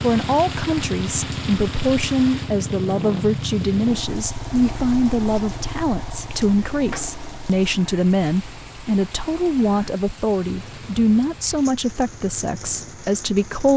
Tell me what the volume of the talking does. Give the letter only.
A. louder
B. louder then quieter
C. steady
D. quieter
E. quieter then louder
C.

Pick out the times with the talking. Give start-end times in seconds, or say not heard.
0.0-13.7.